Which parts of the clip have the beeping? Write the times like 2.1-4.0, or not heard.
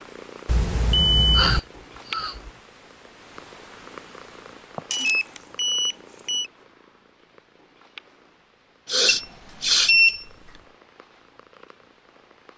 0.5-1.6, 4.9-6.5, 9.1-10.2.